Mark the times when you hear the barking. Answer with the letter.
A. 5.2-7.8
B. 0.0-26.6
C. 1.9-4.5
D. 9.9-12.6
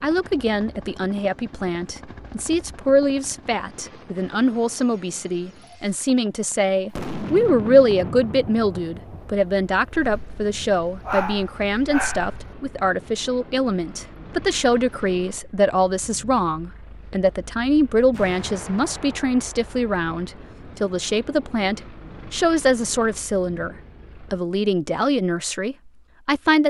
D.